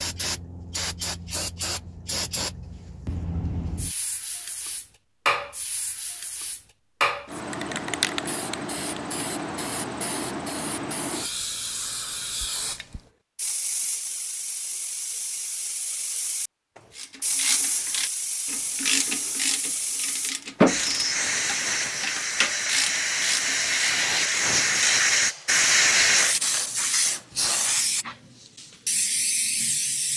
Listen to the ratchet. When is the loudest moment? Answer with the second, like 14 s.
21 s.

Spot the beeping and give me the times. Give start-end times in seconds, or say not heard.
not heard.